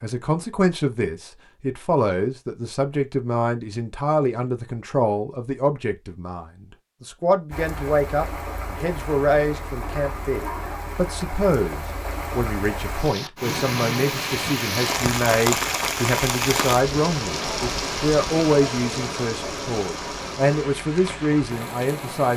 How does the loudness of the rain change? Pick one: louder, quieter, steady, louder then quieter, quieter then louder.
louder then quieter.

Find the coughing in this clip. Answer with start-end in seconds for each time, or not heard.
not heard.